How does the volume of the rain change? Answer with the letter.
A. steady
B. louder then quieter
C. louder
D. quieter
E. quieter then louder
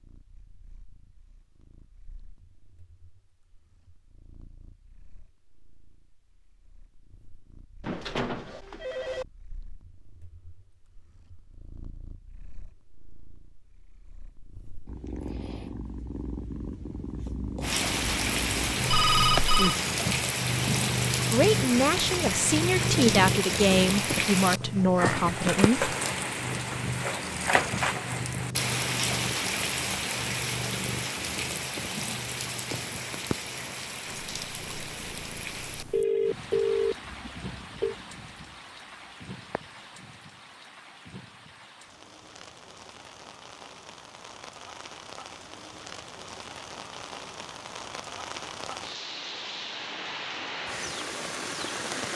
E.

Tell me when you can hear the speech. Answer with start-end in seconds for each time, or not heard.
21.3-25.9.